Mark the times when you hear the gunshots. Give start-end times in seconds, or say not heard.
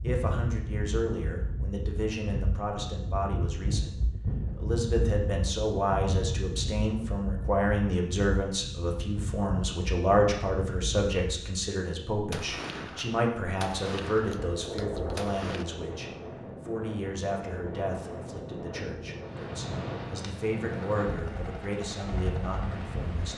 12.3-15.7.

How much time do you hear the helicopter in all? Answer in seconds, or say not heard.
3 s.